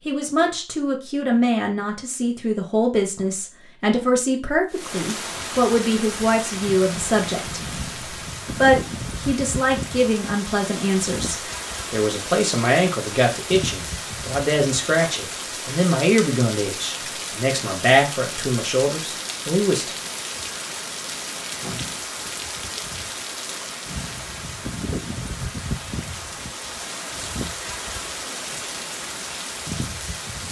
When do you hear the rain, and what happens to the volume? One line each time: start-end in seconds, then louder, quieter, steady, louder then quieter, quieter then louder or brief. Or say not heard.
4.7-30.4 steady.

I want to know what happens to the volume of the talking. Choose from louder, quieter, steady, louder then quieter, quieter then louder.
steady.